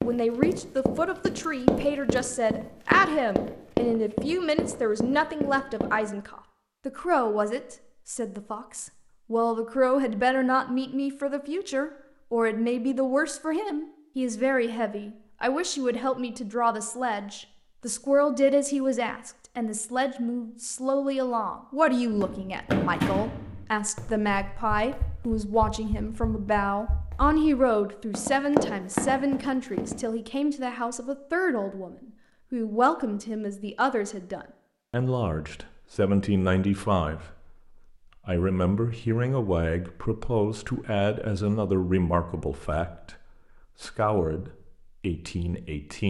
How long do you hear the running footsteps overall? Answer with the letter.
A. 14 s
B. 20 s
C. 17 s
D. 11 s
A.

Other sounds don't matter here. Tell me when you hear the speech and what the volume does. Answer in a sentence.
You can hear the speech from 0.0 to 37.5 s, at a steady volume; from 38.2 to 43.1 s, at a steady volume; and briefly from 43.8 to 46.0 s.